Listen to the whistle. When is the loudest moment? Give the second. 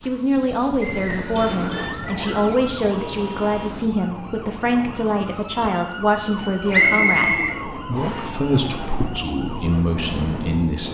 7 s.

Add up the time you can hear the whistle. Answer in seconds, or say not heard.
3 s.